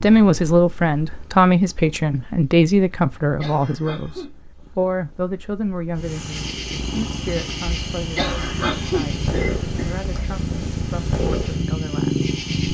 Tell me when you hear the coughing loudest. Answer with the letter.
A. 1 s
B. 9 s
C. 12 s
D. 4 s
B.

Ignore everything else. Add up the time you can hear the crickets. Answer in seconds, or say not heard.
7 s.